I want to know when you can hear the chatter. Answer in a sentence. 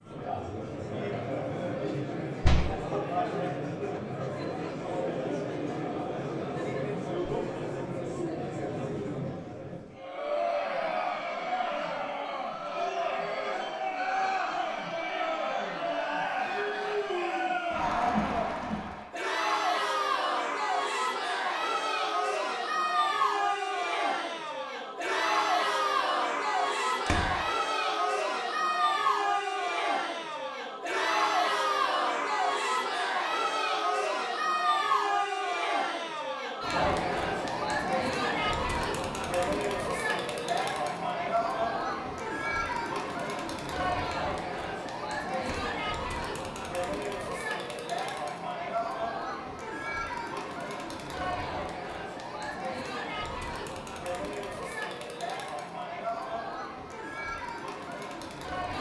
The chatter can be heard from 0.0 to 58.7 s.